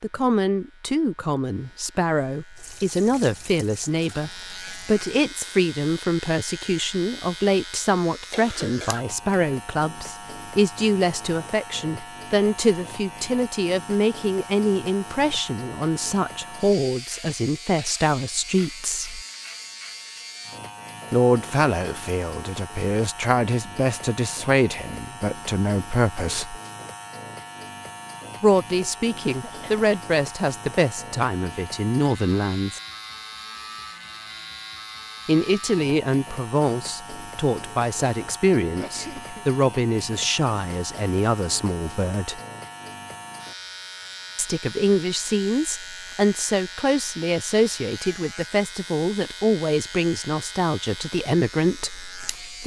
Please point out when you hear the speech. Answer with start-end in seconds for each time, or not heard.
0.0-19.2, 21.1-26.6, 28.4-32.8, 35.2-42.4, 44.4-52.6.